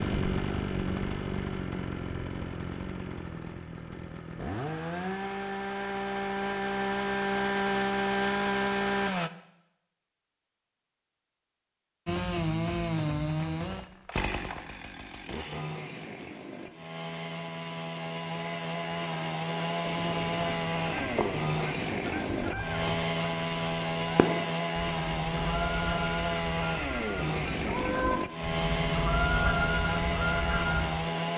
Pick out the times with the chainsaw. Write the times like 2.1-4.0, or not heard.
0.0-9.3, 12.1-31.3.